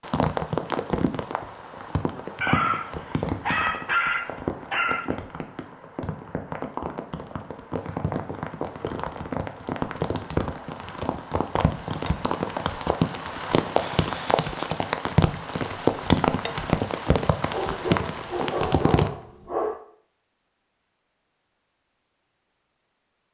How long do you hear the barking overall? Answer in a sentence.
The barking can be heard for 5 seconds in total.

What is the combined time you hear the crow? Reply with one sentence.
The crow can't be heard in this clip.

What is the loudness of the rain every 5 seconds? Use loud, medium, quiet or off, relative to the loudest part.
medium, medium, loud, loud, off.